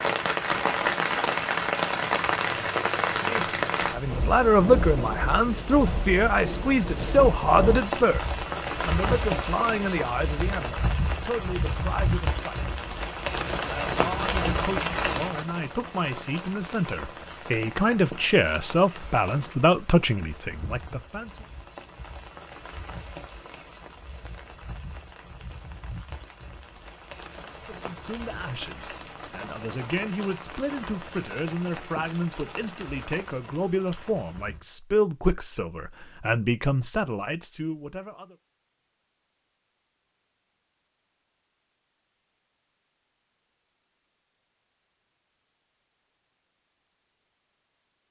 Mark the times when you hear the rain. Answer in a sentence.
You can hear the rain from 0.0 to 34.6 s.